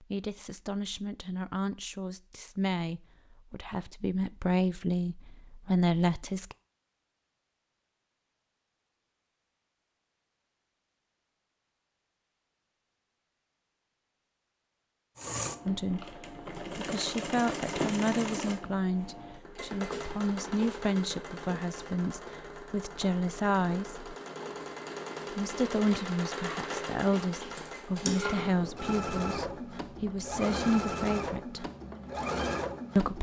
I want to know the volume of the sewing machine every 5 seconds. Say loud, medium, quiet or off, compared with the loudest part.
off, off, off, loud, medium, loud, loud.